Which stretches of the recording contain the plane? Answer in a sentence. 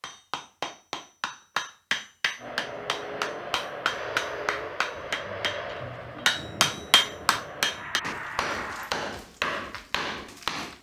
The plane can be heard from 2.4 to 8.9 s.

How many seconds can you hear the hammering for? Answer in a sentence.
You can hear the hammering for 11 seconds altogether.